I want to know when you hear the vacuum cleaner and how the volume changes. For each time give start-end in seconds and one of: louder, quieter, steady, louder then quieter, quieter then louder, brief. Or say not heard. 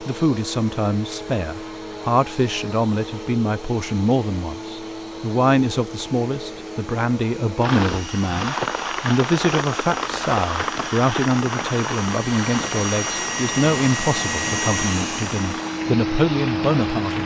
0.0-17.2 louder.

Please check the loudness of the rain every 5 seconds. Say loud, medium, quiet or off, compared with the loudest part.
off, loud, loud, medium.